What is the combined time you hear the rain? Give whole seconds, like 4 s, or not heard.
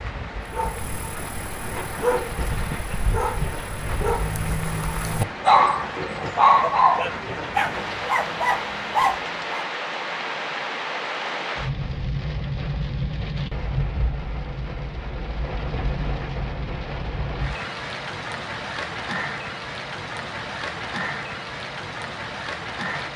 23 s.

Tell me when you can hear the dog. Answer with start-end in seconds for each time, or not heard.
0.5-9.7.